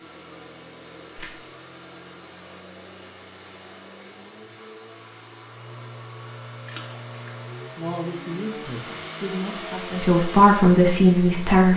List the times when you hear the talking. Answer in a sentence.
The talking can be heard from 7.8 to 11.7 s.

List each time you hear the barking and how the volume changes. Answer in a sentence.
The barking can't be heard in this clip.